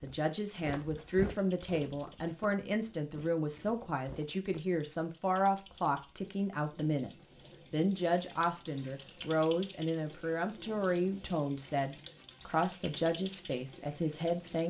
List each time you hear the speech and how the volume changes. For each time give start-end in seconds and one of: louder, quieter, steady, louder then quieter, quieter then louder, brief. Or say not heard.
0.0-14.6 steady.